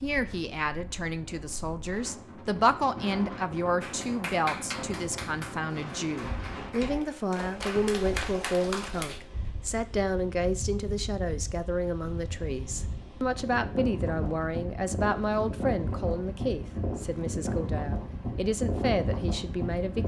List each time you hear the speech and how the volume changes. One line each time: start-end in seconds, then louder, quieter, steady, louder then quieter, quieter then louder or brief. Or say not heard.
0.0-20.0 steady.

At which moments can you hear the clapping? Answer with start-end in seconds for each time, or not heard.
3.8-9.2.